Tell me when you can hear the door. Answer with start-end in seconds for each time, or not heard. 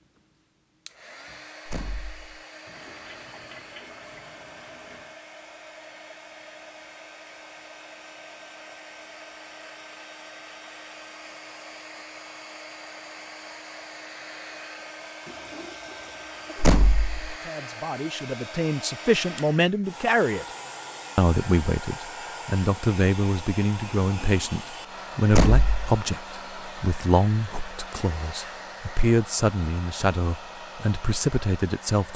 1.6-2.3, 16.6-17.4, 25.3-25.9.